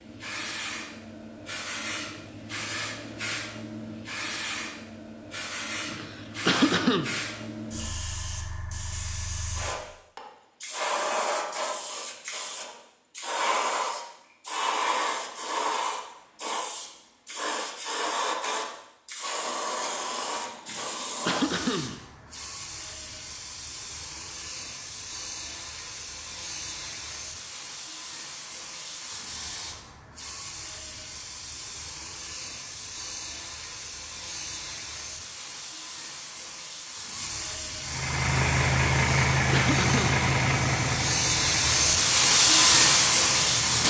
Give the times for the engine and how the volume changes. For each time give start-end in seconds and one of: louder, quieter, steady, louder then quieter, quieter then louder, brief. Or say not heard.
37.8-43.8 quieter.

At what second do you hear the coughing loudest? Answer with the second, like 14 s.
7 s.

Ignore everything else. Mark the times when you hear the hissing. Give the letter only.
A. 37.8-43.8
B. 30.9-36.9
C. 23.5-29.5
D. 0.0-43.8
D.